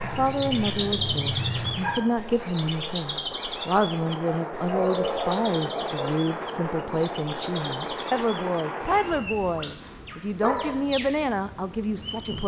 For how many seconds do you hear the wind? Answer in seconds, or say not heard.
9 s.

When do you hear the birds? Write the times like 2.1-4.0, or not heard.
0.0-12.4.